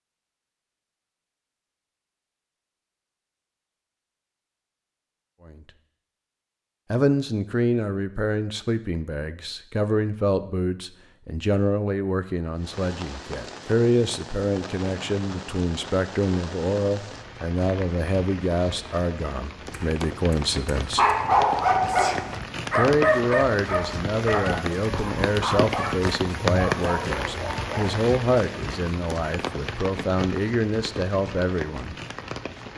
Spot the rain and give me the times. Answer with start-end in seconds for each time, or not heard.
12.6-32.7.